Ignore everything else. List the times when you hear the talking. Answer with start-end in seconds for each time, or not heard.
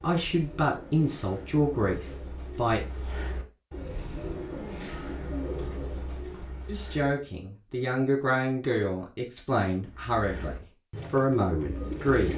0.0-2.8, 6.7-12.3.